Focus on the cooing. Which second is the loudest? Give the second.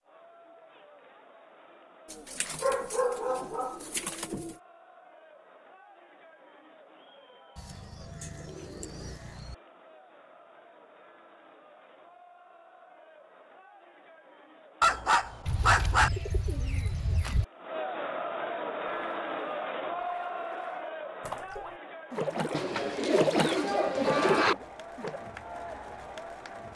24 s.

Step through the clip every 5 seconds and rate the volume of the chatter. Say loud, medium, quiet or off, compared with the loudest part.
quiet, quiet, quiet, loud, loud, medium.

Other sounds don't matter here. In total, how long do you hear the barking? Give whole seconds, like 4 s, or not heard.
3 s.